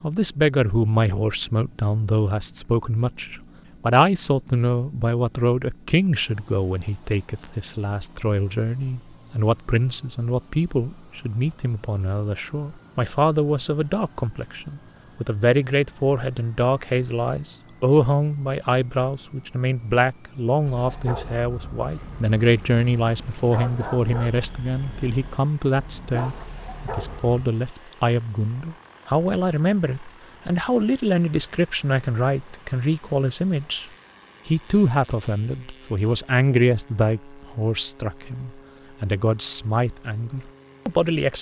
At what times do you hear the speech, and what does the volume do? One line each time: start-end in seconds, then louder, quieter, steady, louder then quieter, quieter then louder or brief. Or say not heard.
0.0-41.3 steady.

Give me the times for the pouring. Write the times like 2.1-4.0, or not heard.
not heard.